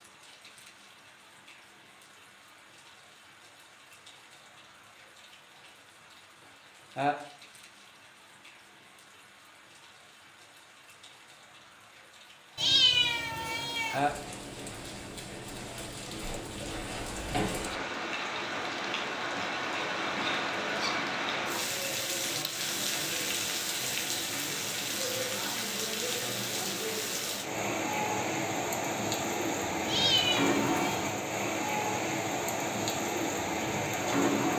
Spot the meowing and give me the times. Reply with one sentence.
The meowing can be heard from 12.6 to 14.0 s and from 29.9 to 31.1 s.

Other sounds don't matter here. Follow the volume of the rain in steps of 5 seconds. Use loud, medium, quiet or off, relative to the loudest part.
quiet, quiet, medium, medium, loud, loud, loud.